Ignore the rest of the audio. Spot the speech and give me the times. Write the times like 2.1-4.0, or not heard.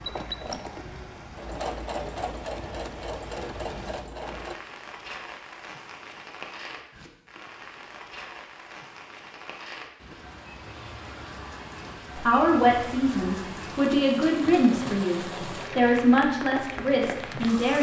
12.2-17.7.